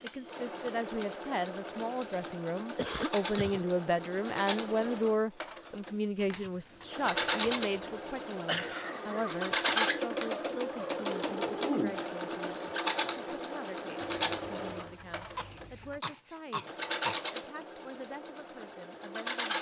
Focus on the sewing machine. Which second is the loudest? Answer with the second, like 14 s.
10 s.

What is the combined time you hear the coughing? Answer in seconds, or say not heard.
5 s.